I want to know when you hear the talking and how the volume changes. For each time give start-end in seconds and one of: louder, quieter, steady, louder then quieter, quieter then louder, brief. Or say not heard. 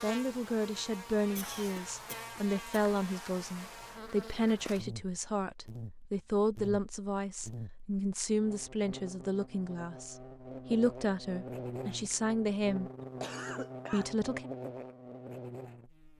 0.0-12.9 steady
13.9-14.4 brief.